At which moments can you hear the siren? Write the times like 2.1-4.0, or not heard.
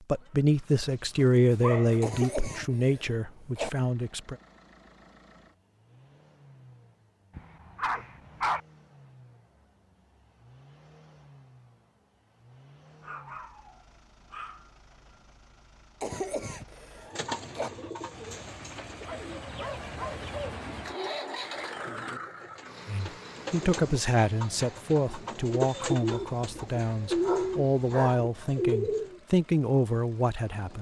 not heard.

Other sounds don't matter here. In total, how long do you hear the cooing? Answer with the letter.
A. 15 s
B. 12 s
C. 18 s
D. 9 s
B.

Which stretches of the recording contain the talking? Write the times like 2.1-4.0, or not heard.
0.1-4.3, 22.9-30.7.